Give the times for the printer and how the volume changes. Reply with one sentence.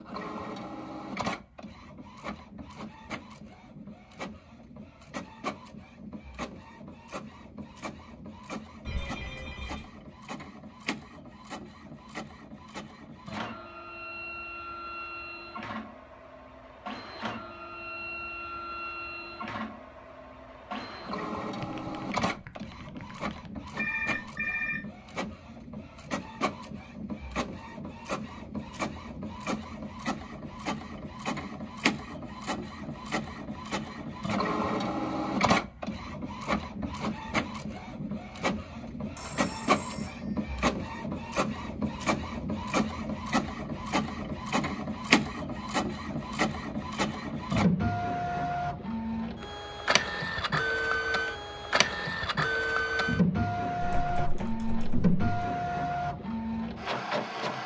The printer can be heard from 0.0 to 57.6 s, getting louder.